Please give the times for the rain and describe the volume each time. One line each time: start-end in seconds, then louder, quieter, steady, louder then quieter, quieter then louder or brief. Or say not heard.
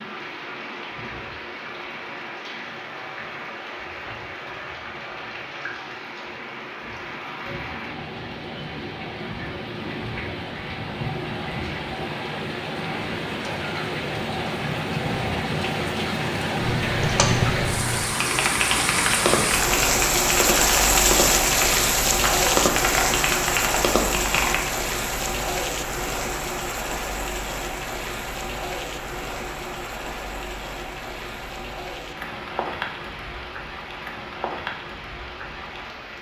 0.0-36.1 louder then quieter.